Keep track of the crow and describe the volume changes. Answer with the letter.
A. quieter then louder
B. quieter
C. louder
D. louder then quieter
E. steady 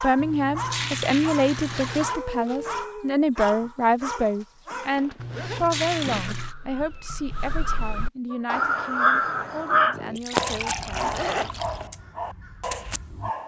D.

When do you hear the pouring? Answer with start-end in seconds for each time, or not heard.
0.1-2.1, 5.2-6.5, 10.2-11.8.